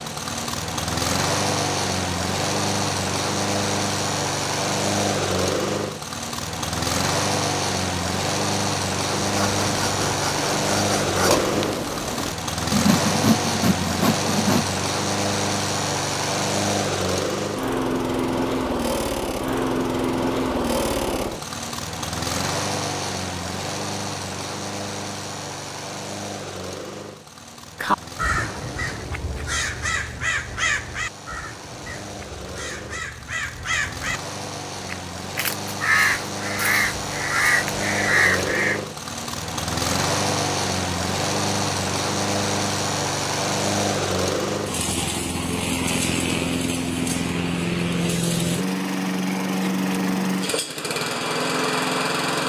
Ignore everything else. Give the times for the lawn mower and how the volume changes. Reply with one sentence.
You can hear the lawn mower from 0.0 to 52.4 s, getting quieter then louder.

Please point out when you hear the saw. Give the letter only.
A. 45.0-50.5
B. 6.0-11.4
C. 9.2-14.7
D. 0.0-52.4
C.